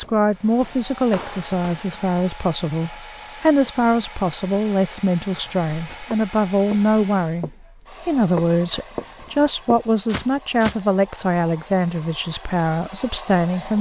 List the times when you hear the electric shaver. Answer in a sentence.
The electric shaver can't be heard in this clip.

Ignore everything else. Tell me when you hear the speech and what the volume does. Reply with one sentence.
The speech can be heard from 0.0 to 13.7 s, at a steady volume.